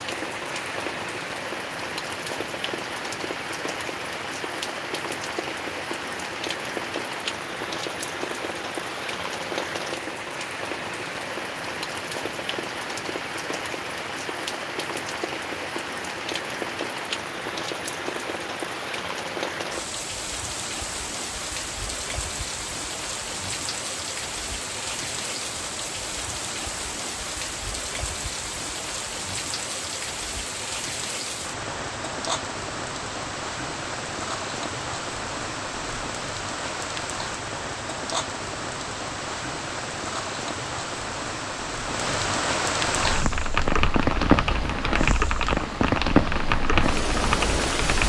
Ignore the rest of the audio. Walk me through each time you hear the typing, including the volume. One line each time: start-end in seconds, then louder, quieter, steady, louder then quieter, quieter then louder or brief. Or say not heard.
43.0-48.0 steady.